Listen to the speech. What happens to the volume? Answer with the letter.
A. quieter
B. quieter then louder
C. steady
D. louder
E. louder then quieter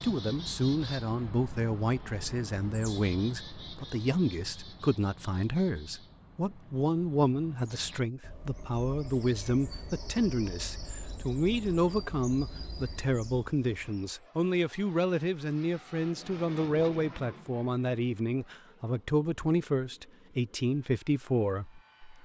C.